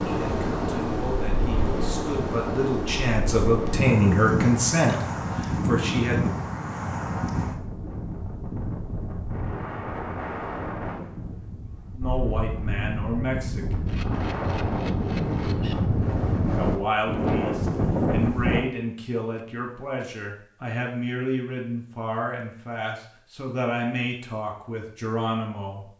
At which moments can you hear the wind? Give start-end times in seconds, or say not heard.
0.0-18.6.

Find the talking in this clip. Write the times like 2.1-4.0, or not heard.
0.0-6.2, 11.9-13.8, 16.5-25.9.